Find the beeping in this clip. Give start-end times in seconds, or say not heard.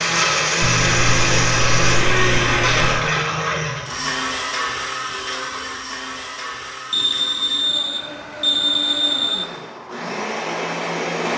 0.6-3.1, 6.9-9.5.